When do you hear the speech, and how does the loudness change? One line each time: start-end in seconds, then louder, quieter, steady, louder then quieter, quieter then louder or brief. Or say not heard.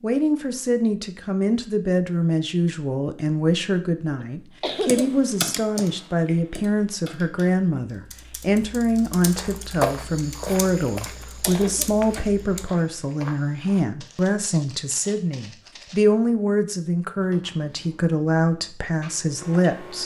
0.0-20.0 steady.